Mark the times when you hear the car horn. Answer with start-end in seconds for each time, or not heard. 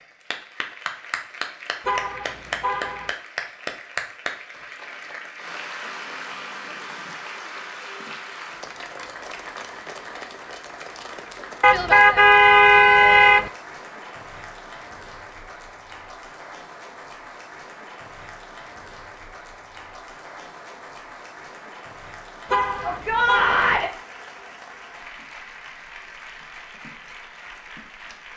1.9-3.1, 11.6-13.5, 22.5-23.6.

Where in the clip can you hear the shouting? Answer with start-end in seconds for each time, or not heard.
22.8-23.9.